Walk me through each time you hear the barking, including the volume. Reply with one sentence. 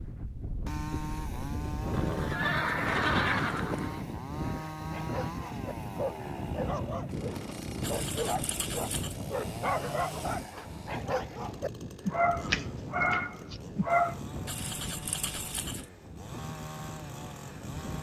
The barking can be heard from 4.7 to 14.2 s, getting louder.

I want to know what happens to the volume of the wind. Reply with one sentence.
The loudness of the wind goes down.